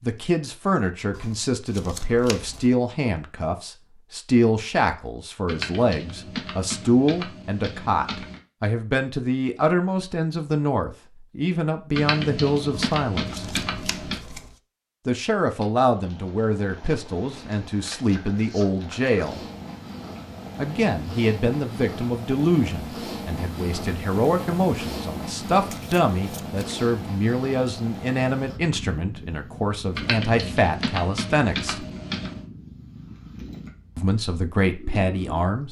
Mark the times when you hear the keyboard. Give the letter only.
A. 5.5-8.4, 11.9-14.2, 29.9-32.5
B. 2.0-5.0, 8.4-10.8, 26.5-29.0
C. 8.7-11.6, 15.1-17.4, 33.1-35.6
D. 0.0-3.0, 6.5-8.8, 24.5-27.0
A.